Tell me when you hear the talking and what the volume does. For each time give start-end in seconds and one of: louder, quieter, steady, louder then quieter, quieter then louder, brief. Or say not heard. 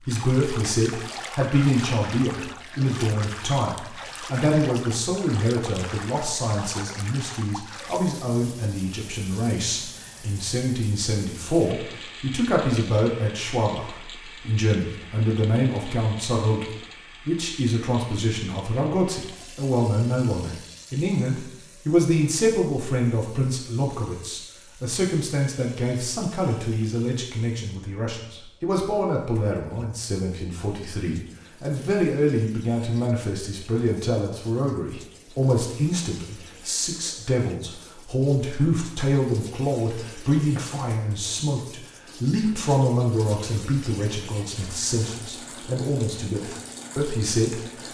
0.1-47.6 steady.